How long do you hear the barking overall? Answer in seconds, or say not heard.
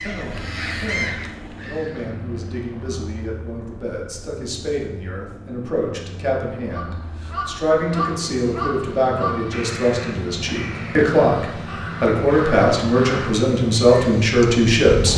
not heard.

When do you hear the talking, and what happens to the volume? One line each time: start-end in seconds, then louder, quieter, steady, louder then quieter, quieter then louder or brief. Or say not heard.
0.0-15.1 louder.